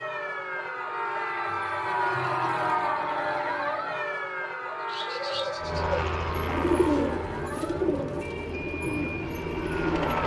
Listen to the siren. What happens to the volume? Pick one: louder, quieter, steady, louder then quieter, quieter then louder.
quieter.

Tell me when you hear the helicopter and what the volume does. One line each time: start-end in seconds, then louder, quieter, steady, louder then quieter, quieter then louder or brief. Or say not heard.
5.5-10.2 quieter then louder.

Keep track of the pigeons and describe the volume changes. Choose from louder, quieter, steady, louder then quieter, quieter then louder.
louder then quieter.